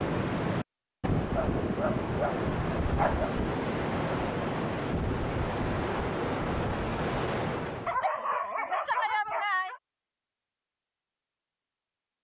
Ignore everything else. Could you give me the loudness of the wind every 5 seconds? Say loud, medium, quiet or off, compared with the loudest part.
loud, loud, off.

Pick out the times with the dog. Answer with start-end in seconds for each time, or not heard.
1.4-3.3, 7.8-9.8.